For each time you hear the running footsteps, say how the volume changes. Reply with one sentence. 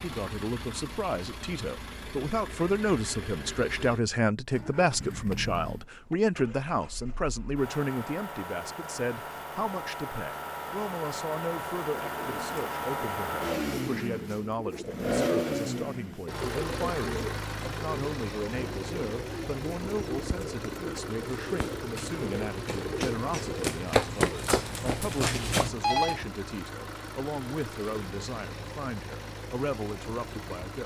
The running footsteps can be heard from 21.4 to 25.7 s, getting louder then quieter.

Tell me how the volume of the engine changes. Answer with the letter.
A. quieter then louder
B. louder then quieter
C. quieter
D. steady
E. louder
B.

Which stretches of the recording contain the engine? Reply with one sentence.
You can hear the engine from 0.0 to 30.8 s.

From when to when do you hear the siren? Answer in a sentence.
The siren can't be heard in this clip.